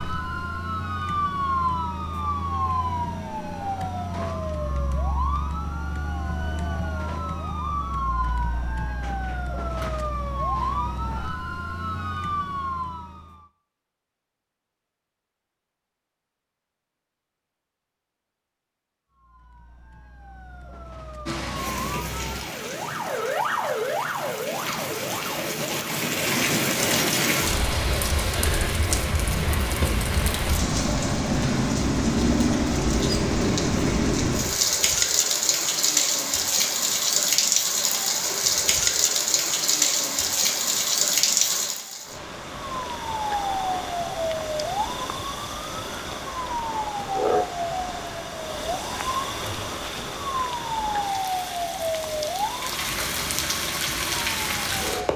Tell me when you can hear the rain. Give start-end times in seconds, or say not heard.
21.2-55.1.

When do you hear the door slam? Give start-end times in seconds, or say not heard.
9.0-9.9.